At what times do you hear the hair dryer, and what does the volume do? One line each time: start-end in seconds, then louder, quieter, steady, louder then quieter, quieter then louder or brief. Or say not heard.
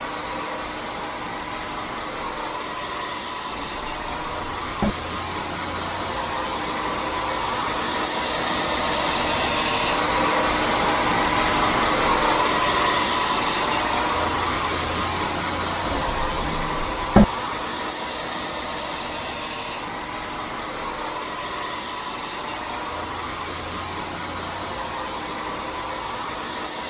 0.0-26.8 louder then quieter.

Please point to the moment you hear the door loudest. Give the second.
17 s.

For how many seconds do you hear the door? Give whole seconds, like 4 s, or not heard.
3 s.